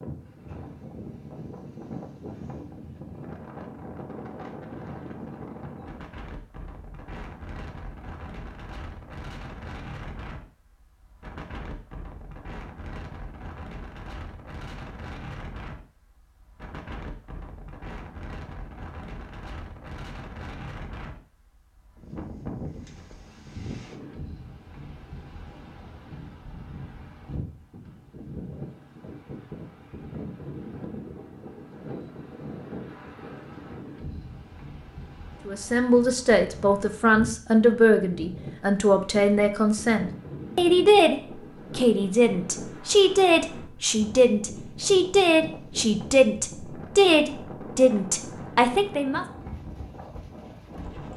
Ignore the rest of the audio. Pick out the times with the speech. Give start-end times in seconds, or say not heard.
35.5-49.2.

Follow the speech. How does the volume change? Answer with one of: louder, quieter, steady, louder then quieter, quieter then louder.
steady.